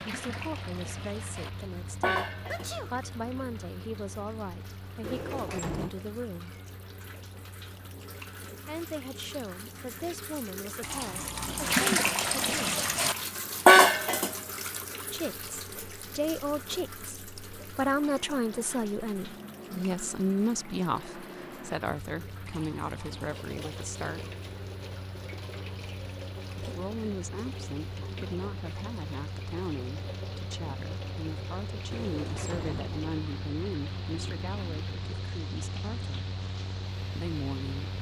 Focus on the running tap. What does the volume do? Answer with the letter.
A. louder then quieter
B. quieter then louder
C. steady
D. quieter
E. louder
A.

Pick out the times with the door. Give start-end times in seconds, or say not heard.
5.0-5.9, 31.9-33.1.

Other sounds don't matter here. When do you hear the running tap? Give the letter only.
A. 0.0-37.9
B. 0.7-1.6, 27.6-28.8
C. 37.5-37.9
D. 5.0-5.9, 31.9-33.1
A.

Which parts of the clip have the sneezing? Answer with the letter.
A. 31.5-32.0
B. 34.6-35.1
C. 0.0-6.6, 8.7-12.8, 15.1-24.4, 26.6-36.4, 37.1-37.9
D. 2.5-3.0
D.